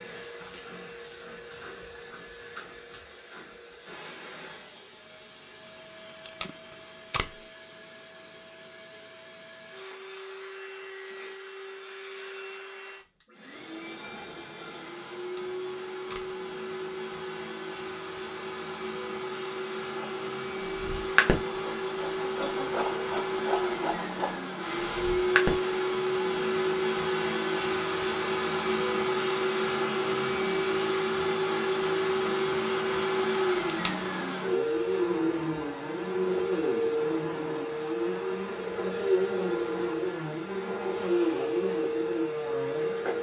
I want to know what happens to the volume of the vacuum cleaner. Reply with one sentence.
The loudness of the vacuum cleaner goes up.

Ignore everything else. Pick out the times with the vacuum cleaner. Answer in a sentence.
You can hear the vacuum cleaner from 0.0 to 43.1 s.